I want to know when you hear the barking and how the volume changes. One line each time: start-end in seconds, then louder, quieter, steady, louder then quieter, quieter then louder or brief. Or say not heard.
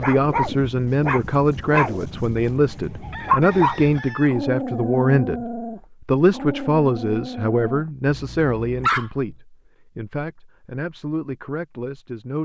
0.0-9.1 quieter.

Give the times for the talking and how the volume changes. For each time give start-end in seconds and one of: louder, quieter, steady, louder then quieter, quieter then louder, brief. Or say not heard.
0.0-12.4 quieter.